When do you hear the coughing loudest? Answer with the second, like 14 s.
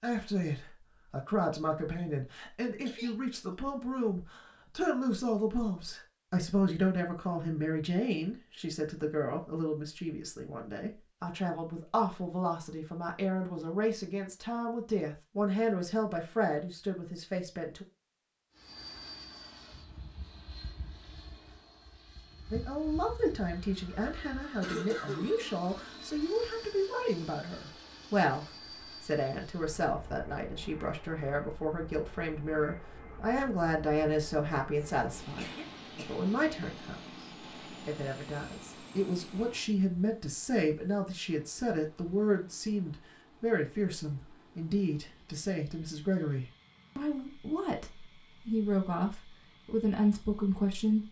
25 s.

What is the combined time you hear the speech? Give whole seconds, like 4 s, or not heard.
46 s.